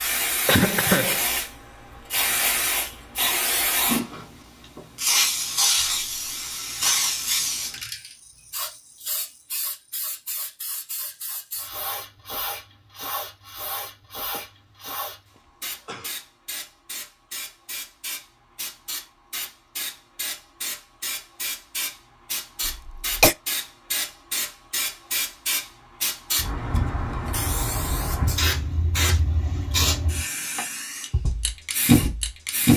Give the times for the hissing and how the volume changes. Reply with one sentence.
You can hear the hissing from 0.0 to 32.7 s, getting quieter then louder.